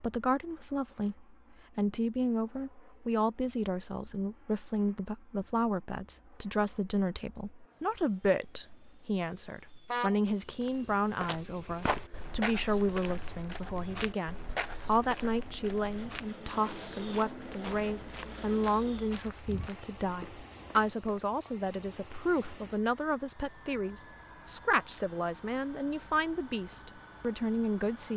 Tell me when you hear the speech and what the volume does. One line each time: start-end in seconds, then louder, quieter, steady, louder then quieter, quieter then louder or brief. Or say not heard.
0.0-28.1 steady.